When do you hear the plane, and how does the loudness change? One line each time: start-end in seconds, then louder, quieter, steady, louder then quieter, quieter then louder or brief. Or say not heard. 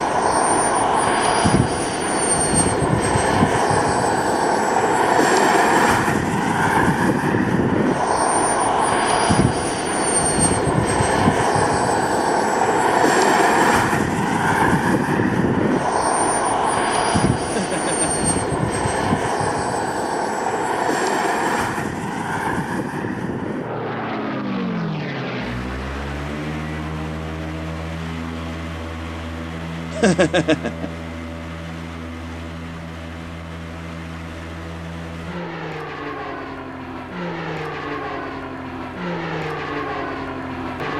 0.0-40.9 quieter.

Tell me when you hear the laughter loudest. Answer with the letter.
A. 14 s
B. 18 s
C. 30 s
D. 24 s
C.